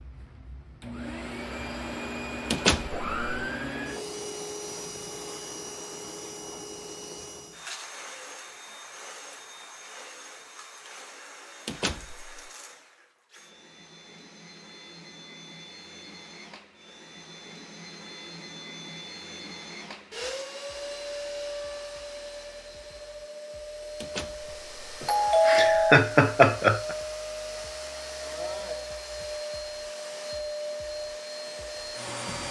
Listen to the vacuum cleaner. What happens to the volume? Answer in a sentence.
The loudness of the vacuum cleaner goes down, then up.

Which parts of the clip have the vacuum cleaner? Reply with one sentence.
The vacuum cleaner can be heard from 0.0 to 32.4 s.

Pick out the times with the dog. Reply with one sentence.
You can't hear the dog here.